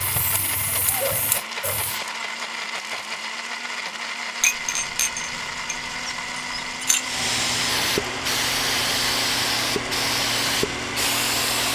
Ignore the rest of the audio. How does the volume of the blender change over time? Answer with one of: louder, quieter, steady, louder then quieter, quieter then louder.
steady.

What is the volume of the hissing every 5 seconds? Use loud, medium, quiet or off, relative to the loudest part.
medium, loud, loud.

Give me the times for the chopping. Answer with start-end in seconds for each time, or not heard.
not heard.